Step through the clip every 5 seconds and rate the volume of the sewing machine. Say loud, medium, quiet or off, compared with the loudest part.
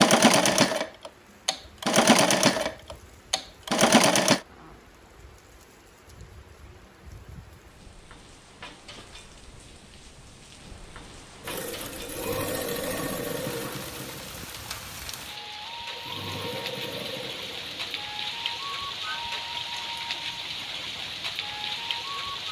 loud, off, quiet, quiet, off.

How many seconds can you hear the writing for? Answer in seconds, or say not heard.
not heard.